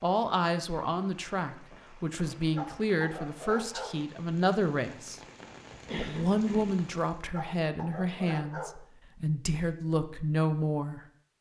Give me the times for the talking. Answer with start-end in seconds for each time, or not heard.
0.0-5.2, 6.0-11.0.